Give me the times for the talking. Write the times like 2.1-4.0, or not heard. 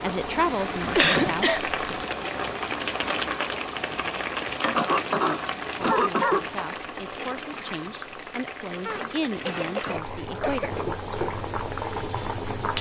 0.0-2.1, 5.9-11.2.